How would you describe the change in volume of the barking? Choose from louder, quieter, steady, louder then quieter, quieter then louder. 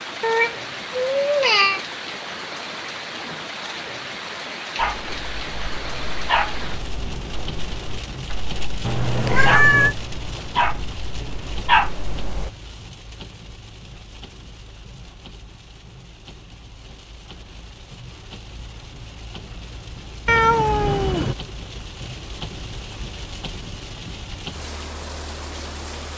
quieter then louder.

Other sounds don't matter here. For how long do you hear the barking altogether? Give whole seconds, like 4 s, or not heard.
8 s.